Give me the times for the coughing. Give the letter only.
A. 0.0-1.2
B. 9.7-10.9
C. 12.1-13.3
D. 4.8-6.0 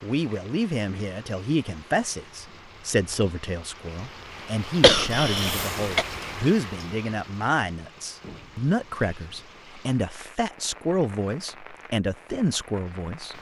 D.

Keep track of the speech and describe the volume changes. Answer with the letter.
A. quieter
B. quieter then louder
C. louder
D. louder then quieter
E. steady
E.